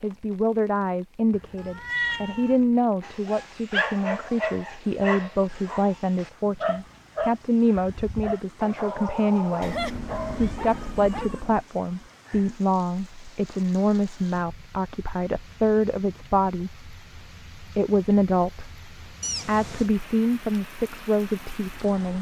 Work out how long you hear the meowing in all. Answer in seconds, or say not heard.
4 s.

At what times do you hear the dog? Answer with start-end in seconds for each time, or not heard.
3.0-11.3.